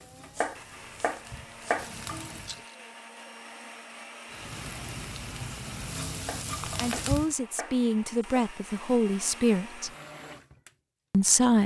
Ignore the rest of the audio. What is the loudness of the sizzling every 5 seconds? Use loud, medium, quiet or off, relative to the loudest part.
medium, loud, off.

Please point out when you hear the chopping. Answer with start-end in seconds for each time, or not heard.
0.3-1.9, 6.2-8.5.